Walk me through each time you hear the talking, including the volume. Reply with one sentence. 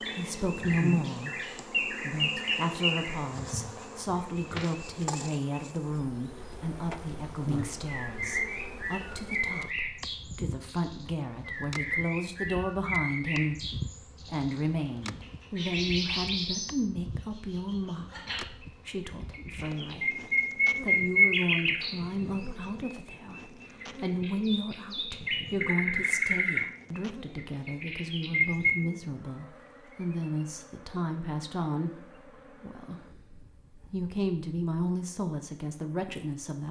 The talking can be heard from 0.0 to 33.0 s, at a steady volume; and briefly from 33.7 to 36.6 s.